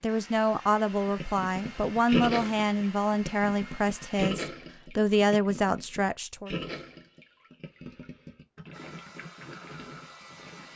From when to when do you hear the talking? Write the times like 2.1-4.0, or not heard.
0.0-6.5.